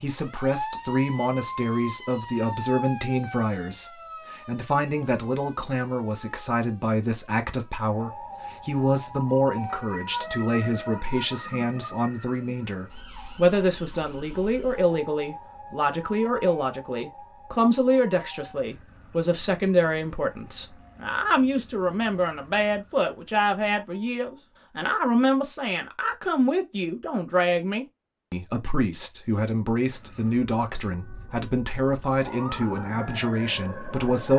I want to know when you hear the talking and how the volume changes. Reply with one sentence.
The talking can be heard from 0.0 to 34.3 s, at a steady volume.